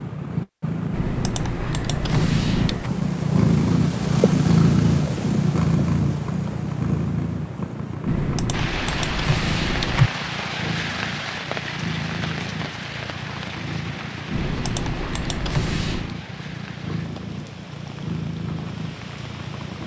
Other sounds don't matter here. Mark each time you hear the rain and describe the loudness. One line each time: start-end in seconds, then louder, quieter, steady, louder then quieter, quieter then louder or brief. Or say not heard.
8.5-19.8 quieter.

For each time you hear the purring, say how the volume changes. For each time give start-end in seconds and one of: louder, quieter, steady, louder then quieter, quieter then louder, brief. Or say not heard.
0.0-19.8 quieter.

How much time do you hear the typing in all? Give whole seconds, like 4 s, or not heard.
6 s.